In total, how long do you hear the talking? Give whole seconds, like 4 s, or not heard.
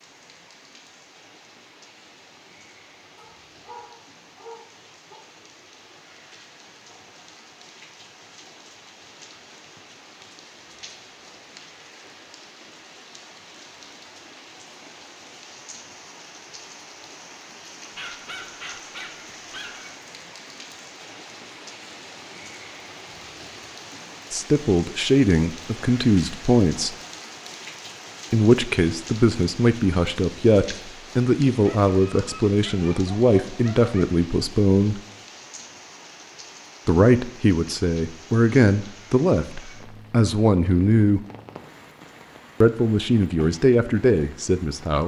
16 s.